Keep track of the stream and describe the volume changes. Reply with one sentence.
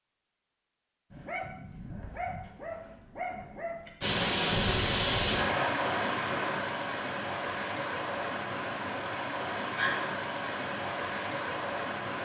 The volume of the stream goes down.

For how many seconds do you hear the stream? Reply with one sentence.
The stream can be heard for 8 seconds in total.